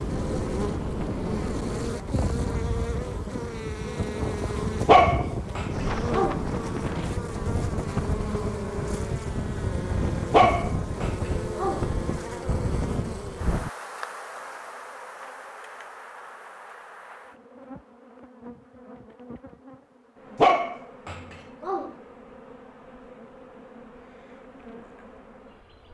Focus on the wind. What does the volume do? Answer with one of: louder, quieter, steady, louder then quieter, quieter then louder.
steady.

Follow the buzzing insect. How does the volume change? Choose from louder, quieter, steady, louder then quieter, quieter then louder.
quieter.